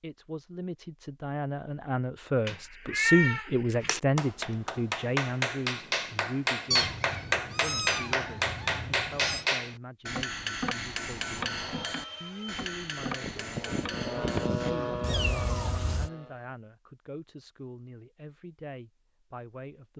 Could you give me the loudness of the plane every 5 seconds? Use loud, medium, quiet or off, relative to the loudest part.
off, off, loud, loud.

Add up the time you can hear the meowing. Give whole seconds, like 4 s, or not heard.
5 s.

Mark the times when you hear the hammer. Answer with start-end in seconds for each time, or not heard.
3.8-14.8.